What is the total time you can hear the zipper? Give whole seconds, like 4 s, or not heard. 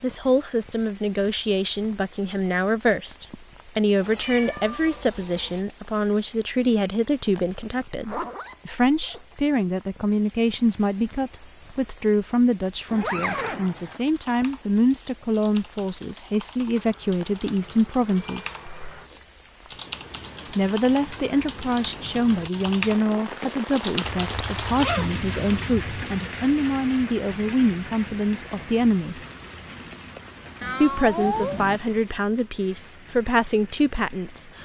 5 s.